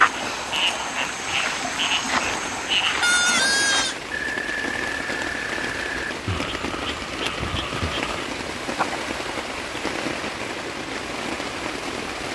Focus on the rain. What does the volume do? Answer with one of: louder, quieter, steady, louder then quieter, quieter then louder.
louder.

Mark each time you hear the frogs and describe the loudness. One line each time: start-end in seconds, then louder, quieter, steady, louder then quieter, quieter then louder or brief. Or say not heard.
0.0-9.0 quieter.